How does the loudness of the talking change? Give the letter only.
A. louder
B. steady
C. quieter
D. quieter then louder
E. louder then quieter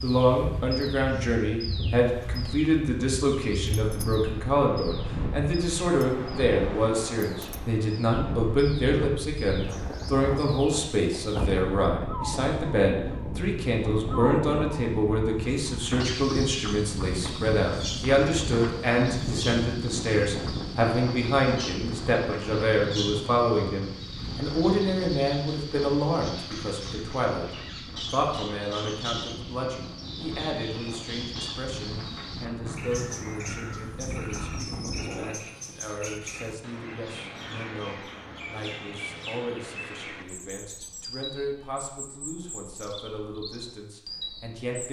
C.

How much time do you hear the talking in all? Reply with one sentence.
You can hear the talking for 45 seconds altogether.